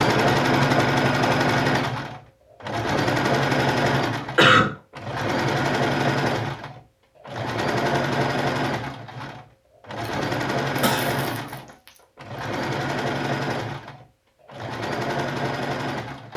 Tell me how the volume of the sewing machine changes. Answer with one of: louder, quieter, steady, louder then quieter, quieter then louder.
quieter.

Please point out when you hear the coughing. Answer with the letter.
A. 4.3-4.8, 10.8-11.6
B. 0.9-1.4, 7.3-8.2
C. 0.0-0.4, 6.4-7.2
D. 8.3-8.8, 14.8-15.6
A.